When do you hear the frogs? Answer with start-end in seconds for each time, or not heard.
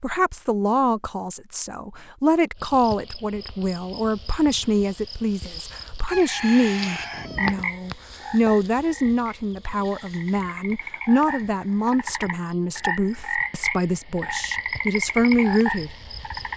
6.2-16.5.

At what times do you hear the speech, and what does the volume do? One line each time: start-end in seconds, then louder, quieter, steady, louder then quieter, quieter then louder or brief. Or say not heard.
0.0-15.9 steady.